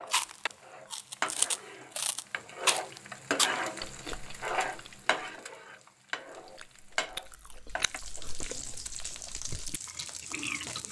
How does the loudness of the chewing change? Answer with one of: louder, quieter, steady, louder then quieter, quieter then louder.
quieter then louder.